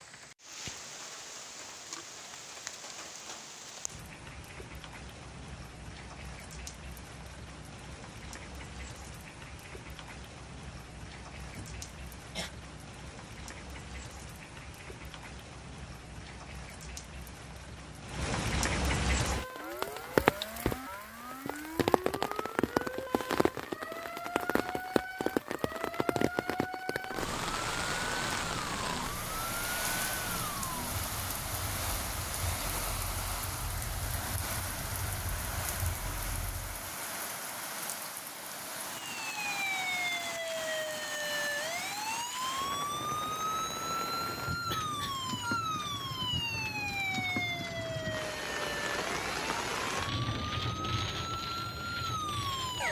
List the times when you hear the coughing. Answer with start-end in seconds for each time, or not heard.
11.4-12.5, 44.7-45.2.